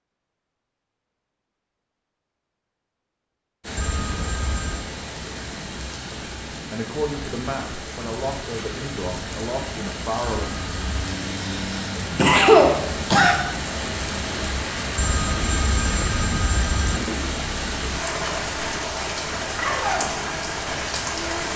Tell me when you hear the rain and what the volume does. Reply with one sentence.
You can hear the rain from 3.6 to 21.5 s, getting louder.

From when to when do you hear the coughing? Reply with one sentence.
You can hear the coughing from 11.4 to 13.3 s.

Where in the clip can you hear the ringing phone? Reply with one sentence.
You can hear the ringing phone from 3.8 to 4.9 s, from 10.2 to 11.1 s and from 14.9 to 17.0 s.